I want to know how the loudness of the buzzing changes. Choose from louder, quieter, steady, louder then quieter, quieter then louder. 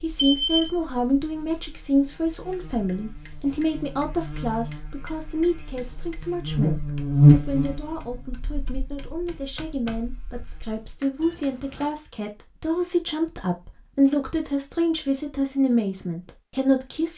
louder then quieter.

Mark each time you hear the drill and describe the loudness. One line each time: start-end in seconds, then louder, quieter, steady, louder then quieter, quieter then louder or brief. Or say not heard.
not heard.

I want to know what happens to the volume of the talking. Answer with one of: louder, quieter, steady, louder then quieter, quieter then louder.
quieter then louder.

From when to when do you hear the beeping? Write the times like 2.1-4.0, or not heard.
0.1-0.8, 11.2-11.9.